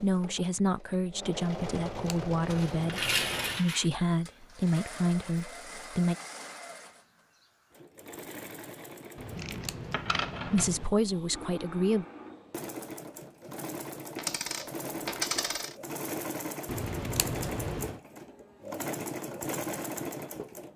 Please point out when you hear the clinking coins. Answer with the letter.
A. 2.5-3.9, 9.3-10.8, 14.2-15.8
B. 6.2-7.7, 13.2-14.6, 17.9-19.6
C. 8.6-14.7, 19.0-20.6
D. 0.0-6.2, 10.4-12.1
A.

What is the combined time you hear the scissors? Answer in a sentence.
You can hear the scissors for 5 seconds altogether.